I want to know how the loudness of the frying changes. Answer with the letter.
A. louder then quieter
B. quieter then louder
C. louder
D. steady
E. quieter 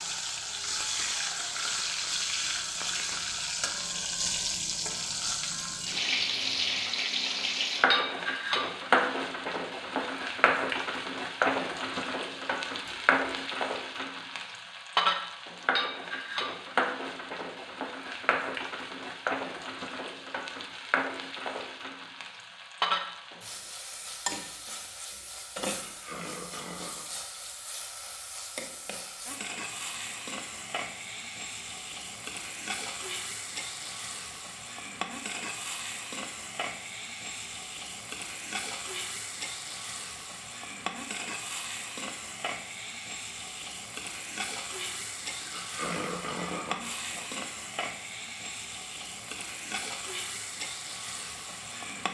E.